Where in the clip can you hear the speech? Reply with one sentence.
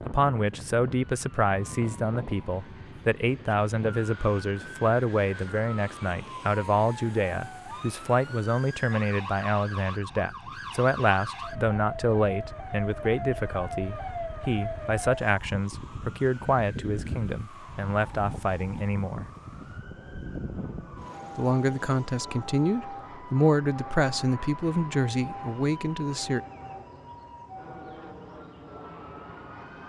You can hear the speech from 0.1 to 19.3 s and from 21.4 to 26.4 s.